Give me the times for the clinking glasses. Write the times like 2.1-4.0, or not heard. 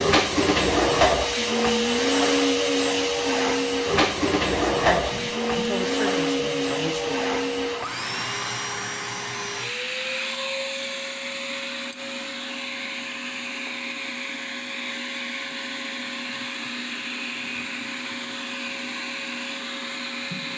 not heard.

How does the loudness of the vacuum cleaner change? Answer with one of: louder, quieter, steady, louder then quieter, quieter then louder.
quieter.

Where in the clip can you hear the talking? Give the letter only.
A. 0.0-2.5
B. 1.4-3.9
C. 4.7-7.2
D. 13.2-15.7
C.